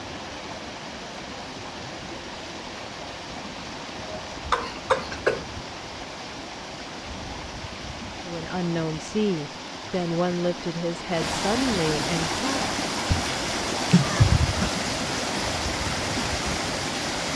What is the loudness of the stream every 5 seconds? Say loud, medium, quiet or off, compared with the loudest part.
medium, medium, loud, loud.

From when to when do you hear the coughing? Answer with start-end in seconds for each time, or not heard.
4.0-5.5, 13.1-14.7.